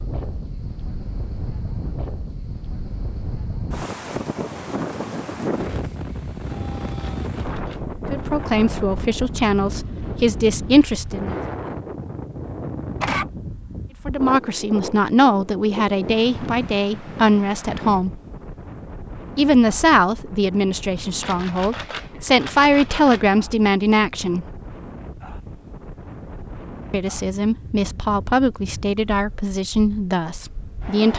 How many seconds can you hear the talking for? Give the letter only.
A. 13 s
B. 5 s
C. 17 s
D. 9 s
C.